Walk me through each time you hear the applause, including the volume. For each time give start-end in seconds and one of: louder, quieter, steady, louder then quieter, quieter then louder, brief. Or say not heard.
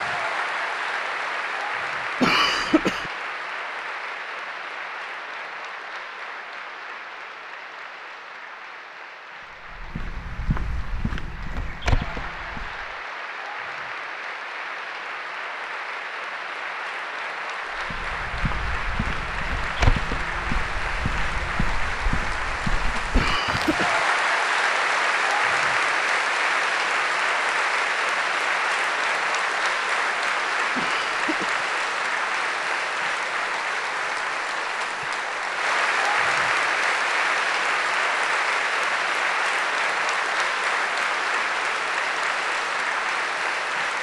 0.0-43.9 louder.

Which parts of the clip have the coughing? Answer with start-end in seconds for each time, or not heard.
2.2-3.1, 23.1-24.0, 30.8-31.6.